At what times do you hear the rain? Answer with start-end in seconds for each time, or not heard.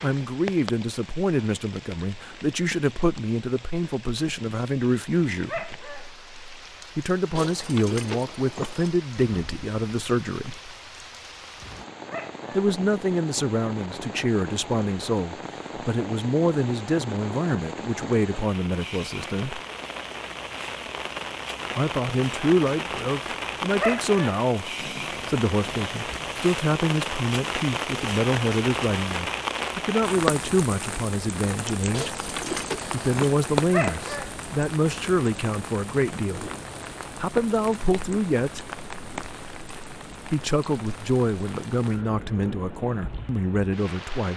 0.0-44.3.